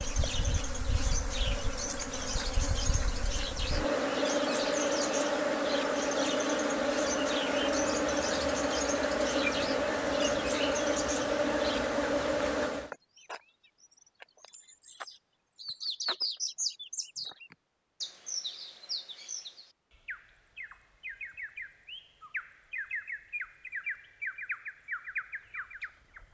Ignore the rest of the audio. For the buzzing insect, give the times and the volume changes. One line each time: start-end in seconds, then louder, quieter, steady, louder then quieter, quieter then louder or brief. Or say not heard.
0.0-12.9 louder.